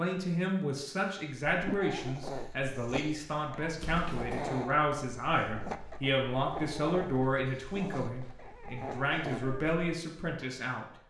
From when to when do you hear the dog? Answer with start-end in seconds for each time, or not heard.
1.5-10.4.